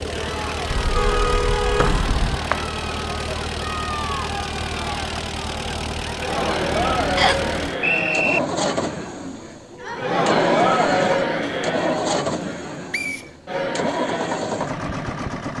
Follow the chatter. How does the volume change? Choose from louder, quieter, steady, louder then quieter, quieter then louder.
louder then quieter.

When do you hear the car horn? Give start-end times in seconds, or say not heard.
0.7-2.4.